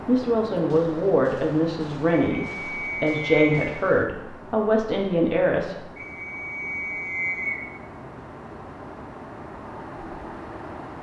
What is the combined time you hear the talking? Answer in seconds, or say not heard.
6 s.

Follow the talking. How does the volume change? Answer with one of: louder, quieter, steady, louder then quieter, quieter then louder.
steady.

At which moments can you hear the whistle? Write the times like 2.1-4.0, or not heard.
2.4-3.6, 6.0-7.7.